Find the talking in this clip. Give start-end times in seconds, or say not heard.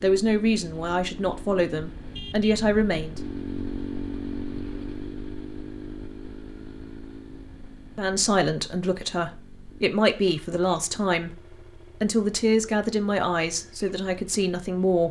0.0-3.2, 8.0-11.4, 12.0-15.0.